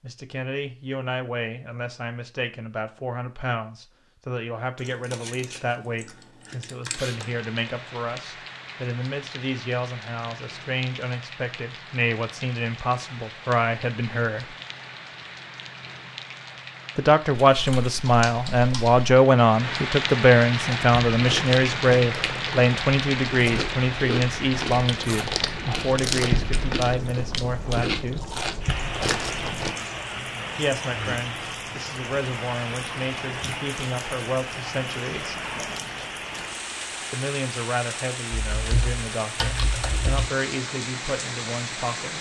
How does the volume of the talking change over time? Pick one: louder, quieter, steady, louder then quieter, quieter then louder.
louder then quieter.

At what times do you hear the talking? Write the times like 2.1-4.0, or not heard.
0.0-14.6, 16.9-28.3, 30.6-35.4, 37.1-42.1.